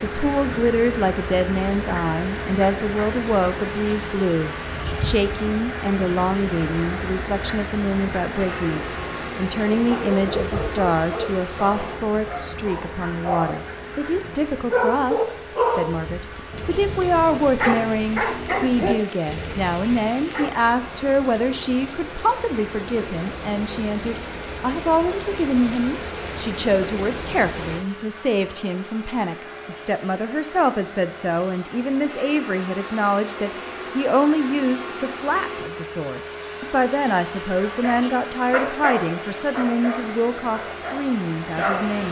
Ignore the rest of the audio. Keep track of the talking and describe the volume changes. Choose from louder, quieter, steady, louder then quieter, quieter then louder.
steady.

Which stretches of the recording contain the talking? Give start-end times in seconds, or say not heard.
0.0-42.0.